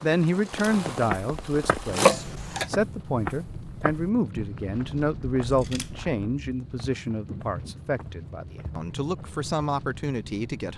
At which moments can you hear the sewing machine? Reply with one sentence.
You can hear the sewing machine from 0.2 to 2.6 s.